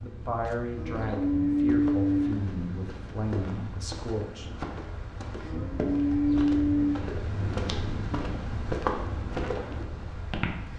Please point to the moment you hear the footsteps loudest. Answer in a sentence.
The loudest moment of the footsteps is at 9 seconds.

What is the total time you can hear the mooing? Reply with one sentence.
You can hear the mooing for 3 seconds altogether.